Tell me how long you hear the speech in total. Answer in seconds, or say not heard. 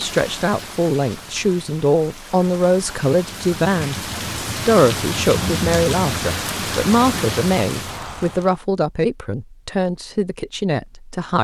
11 s.